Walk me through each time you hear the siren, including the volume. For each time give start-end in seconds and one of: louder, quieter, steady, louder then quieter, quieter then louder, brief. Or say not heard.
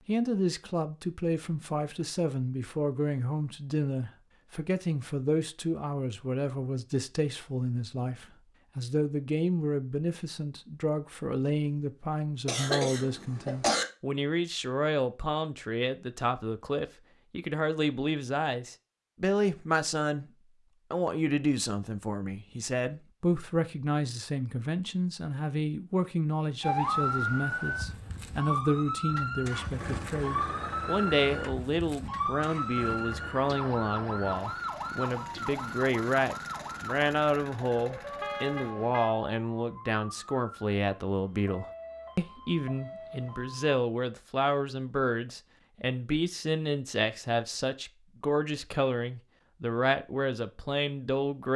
26.6-43.8 quieter.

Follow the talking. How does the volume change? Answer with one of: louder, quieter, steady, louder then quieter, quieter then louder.
steady.